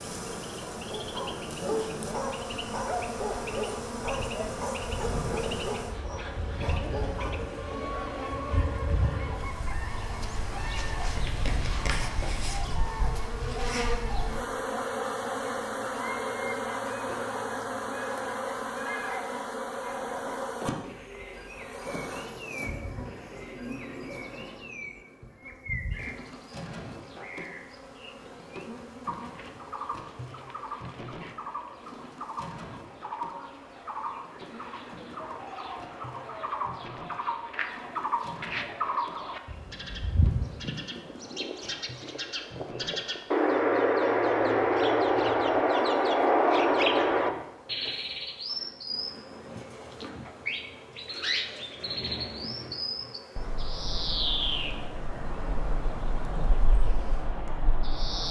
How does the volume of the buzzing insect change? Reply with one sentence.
The volume of the buzzing insect goes down.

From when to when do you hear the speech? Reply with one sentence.
You can't hear the speech here.